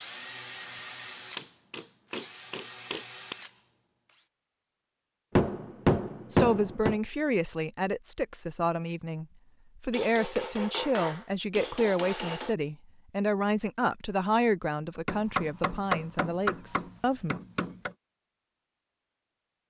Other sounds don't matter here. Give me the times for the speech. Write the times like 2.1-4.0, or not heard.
6.3-17.4.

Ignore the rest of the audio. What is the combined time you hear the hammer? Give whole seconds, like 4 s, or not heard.
9 s.